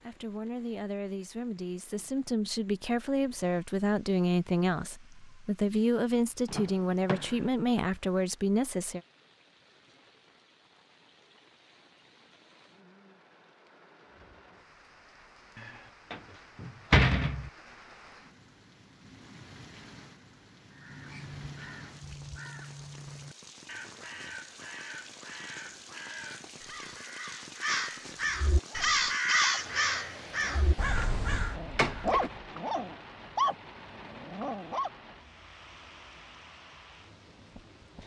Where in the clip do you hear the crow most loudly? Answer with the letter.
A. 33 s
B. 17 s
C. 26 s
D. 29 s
D.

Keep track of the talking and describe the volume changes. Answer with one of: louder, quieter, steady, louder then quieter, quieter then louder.
louder.